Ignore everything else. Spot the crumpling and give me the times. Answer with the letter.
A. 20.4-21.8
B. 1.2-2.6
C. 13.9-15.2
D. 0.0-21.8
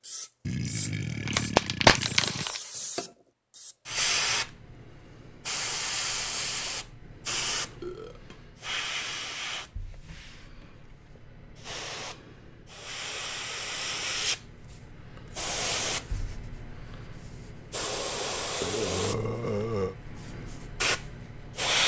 B.